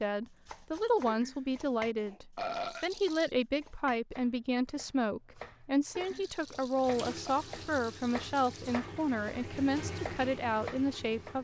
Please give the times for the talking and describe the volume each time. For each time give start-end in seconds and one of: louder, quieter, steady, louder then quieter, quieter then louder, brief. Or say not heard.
0.0-11.3 steady.